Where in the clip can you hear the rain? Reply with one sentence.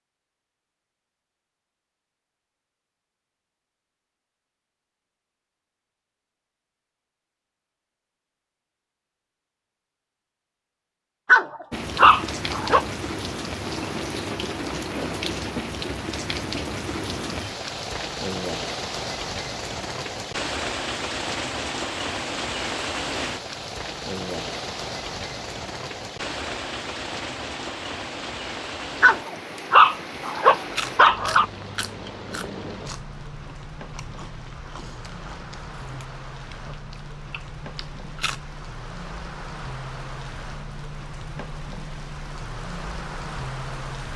You can hear the rain from 11.7 to 44.1 s.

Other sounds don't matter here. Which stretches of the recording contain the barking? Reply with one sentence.
You can hear the barking from 11.2 to 12.8 s and from 29.0 to 31.4 s.